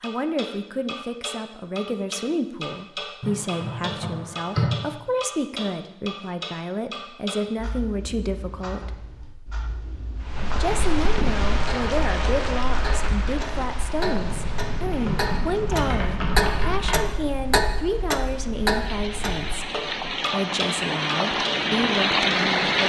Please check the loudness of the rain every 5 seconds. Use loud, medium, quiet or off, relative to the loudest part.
off, off, medium, quiet, loud.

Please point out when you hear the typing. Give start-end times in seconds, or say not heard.
3.2-4.8, 14.2-17.1.